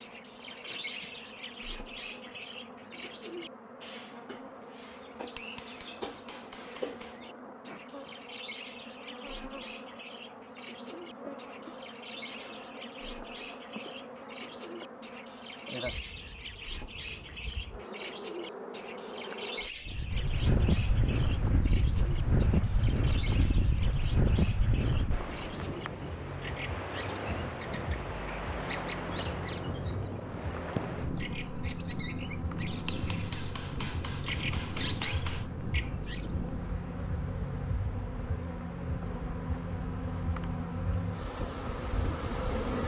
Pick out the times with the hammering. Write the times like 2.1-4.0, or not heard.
5.3-7.3, 32.9-35.5.